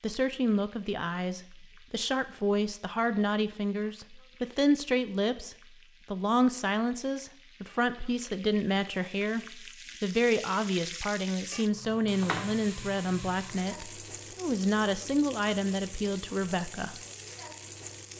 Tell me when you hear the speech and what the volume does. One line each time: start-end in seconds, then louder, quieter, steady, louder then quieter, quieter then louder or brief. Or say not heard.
0.0-16.9 steady.